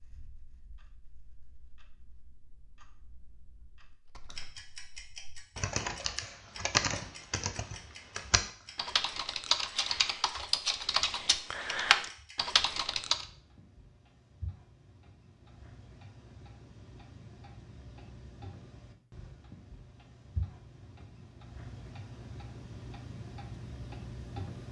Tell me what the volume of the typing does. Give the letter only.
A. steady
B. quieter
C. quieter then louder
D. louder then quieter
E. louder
E.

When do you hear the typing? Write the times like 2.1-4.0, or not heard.
4.0-13.2.